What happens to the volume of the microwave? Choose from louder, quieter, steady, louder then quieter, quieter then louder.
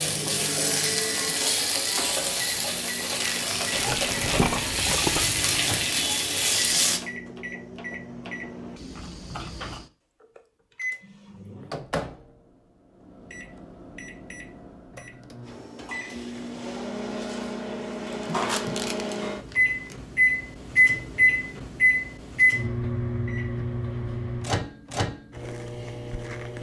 louder.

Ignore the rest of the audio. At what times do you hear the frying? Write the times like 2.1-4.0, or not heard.
0.0-7.0.